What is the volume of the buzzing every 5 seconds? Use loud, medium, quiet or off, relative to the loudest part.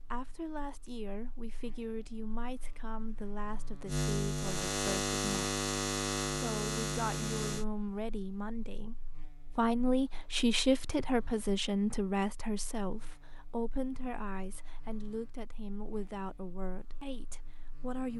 loud, loud, quiet, quiet.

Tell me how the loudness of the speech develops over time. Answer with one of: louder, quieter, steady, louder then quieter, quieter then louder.
louder then quieter.